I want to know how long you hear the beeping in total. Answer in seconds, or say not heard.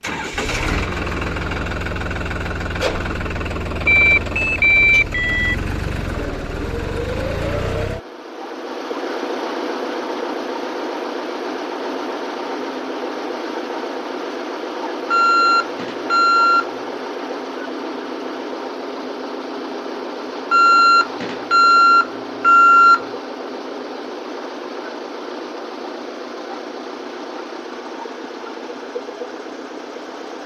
6 s.